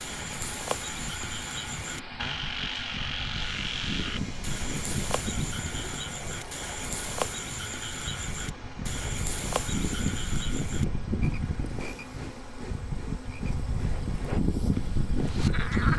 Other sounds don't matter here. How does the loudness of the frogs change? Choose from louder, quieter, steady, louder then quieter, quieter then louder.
quieter.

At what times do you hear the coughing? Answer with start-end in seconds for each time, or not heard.
not heard.